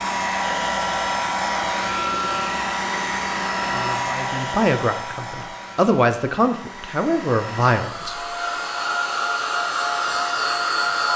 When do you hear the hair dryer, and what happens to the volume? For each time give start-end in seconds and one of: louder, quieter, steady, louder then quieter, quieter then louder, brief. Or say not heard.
0.0-11.1 quieter then louder.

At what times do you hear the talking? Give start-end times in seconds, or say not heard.
4.0-8.2.